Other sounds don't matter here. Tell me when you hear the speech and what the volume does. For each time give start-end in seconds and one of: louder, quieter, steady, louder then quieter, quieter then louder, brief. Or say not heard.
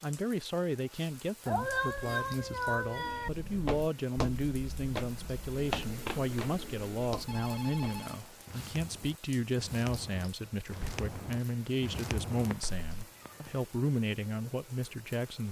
0.0-15.4 steady.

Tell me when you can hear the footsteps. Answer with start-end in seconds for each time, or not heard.
3.2-12.8.